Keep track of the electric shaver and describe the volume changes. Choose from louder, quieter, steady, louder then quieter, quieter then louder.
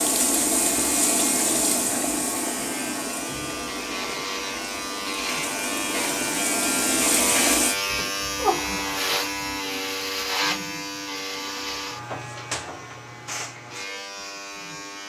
louder then quieter.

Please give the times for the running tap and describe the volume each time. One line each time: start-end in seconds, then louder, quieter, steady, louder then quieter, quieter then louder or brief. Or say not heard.
0.0-7.8 quieter then louder.